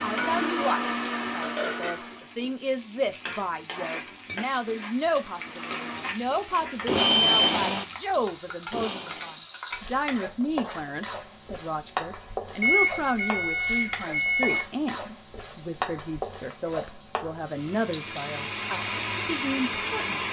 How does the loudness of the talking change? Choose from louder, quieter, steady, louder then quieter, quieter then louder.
steady.